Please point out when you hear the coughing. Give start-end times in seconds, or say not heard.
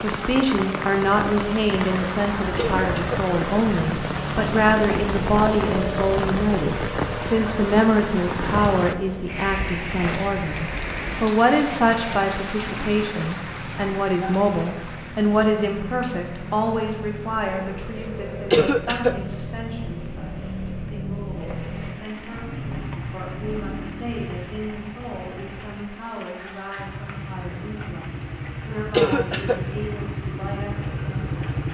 2.5-3.2, 18.5-19.2, 28.9-29.6.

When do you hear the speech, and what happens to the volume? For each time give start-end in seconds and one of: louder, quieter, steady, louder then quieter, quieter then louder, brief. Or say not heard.
0.0-31.6 quieter.